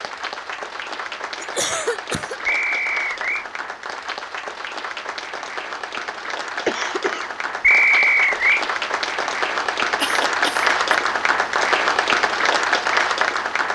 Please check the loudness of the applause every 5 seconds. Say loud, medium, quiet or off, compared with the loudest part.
medium, medium, loud.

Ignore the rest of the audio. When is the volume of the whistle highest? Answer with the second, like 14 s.
8 s.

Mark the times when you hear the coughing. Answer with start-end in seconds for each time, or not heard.
1.4-2.4, 6.7-7.3, 10.0-10.9.